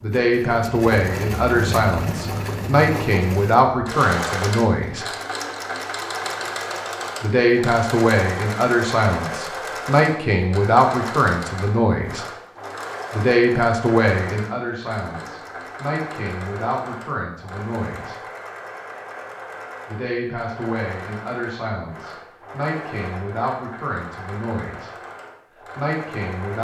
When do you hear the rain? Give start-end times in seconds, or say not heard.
not heard.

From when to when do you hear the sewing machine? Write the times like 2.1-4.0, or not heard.
0.0-26.5.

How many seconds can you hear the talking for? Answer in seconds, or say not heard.
21 s.